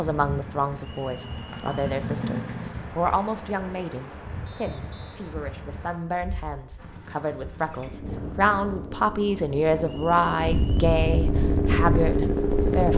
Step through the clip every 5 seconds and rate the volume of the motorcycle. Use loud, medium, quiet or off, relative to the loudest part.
medium, quiet, loud.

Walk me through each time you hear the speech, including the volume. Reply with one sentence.
The speech can be heard from 0.0 to 12.9 s, getting louder.